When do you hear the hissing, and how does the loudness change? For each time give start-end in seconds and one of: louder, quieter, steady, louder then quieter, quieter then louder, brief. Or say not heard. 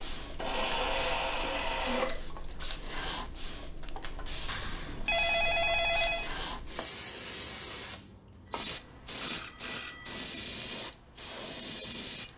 0.0-12.3 steady.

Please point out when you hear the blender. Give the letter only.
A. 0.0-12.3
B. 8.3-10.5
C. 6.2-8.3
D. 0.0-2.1
D.